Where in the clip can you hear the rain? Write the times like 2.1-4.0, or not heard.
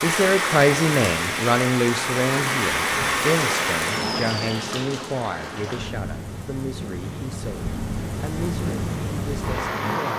0.0-10.1.